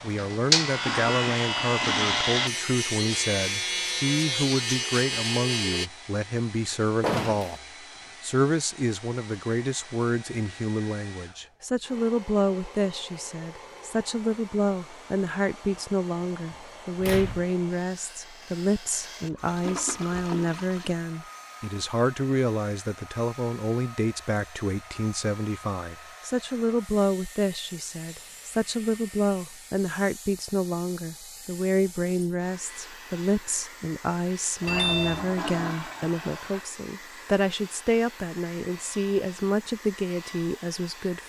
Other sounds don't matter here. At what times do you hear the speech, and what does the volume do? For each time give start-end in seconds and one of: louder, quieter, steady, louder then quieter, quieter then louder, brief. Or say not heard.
0.0-7.6 steady
8.2-41.2 steady.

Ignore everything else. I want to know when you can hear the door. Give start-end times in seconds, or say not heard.
7.0-7.5, 16.5-17.4, 34.6-35.3.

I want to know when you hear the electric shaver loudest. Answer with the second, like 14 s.
1 s.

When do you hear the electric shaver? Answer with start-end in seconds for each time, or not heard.
0.0-5.9.